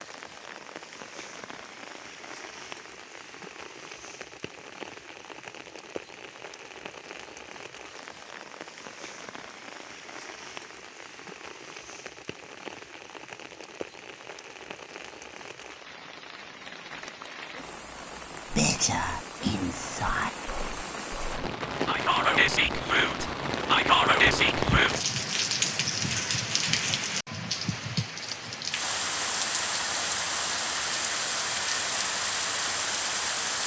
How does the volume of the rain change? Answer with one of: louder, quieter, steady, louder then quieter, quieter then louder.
louder.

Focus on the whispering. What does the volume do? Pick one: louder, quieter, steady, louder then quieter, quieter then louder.
louder.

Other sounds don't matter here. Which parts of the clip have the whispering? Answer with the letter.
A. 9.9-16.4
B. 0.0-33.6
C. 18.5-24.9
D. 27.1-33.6
C.